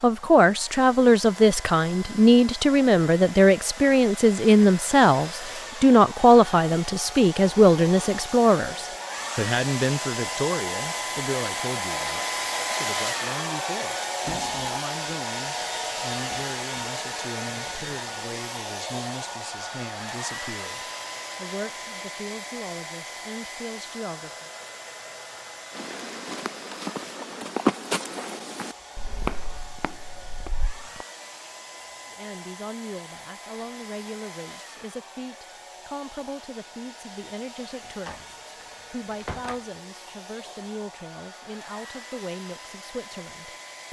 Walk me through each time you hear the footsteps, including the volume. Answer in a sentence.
The footsteps can be heard from 25.7 to 31.1 s, getting louder then quieter.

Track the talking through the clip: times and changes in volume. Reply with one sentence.
You can hear the talking from 0.0 to 24.5 s, getting quieter; and from 32.1 to 43.8 s, at a steady volume.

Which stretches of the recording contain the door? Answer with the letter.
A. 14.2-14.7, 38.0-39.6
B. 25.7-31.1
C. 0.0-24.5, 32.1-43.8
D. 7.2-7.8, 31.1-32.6
A.